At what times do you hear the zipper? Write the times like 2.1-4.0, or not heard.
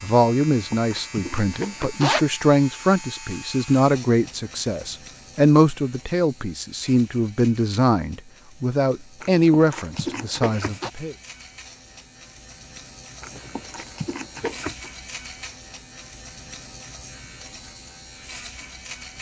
0.5-2.2, 9.2-10.9, 13.2-14.9.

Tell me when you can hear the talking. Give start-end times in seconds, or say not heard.
0.0-11.2.